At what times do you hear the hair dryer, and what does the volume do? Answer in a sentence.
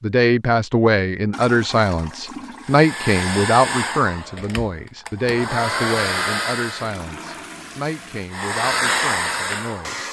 The hair dryer can be heard from 2.6 to 7.0 s, getting quieter then louder; and briefly from 8.3 to 10.0 s.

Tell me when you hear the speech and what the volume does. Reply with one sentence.
The speech can be heard from 0.0 to 10.0 s, getting quieter.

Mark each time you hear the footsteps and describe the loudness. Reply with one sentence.
The footsteps can't be heard in this clip.